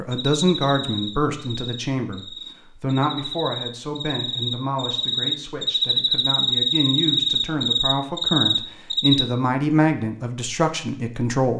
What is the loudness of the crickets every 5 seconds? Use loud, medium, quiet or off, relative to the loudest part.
medium, loud, off.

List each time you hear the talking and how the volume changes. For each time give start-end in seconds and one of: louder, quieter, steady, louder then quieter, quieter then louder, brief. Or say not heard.
0.0-11.5 quieter then louder.